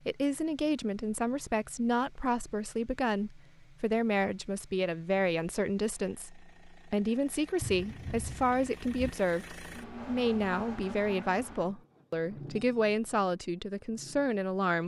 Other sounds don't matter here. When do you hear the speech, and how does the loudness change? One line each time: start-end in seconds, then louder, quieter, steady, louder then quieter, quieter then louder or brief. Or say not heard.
0.1-14.8 steady.